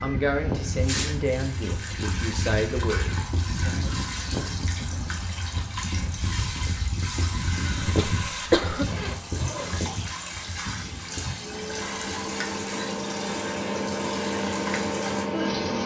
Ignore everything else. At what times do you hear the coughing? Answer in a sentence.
You can hear the coughing from 7.8 to 8.9 s.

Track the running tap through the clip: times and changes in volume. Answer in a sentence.
You can hear the running tap from 0.1 to 15.8 s, at a steady volume.